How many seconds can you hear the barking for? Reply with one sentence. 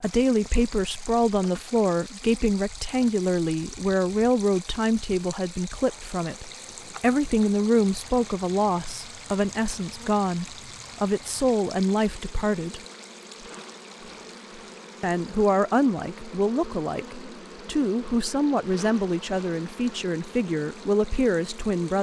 The barking can't be heard in this clip.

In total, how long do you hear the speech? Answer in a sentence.
You can hear the speech for 20 seconds altogether.